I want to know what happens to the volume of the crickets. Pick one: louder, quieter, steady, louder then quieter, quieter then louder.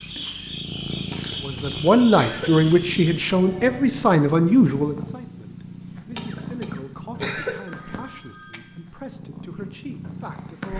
louder.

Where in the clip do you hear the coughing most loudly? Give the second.
7 s.